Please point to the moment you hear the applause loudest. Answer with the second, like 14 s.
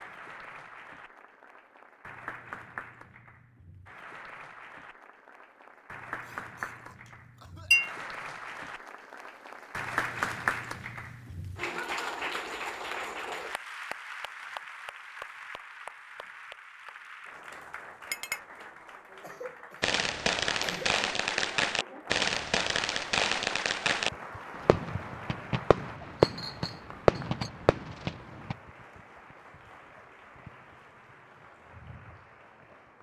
10 s.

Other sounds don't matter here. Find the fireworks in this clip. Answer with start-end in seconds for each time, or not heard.
19.8-28.6.